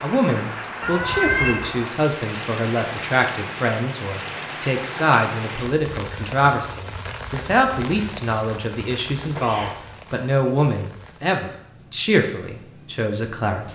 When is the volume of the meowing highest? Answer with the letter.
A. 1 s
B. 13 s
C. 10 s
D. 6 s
A.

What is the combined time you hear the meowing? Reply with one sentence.
You can hear the meowing for 2 seconds altogether.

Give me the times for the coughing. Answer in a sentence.
You can't hear the coughing here.